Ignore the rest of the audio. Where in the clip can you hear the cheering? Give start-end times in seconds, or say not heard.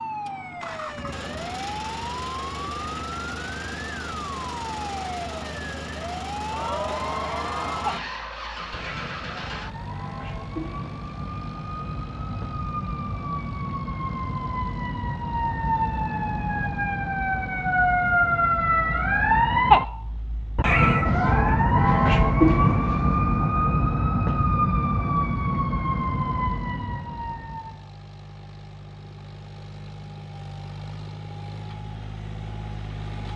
6.5-8.1.